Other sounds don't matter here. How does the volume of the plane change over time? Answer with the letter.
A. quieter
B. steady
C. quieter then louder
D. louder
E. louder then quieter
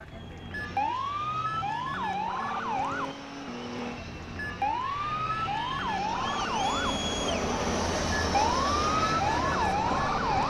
D.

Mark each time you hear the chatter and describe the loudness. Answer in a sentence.
The chatter can be heard from 0.0 to 10.4 s, getting louder.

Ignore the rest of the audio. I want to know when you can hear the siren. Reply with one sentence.
The siren can be heard from 0.0 to 10.4 s.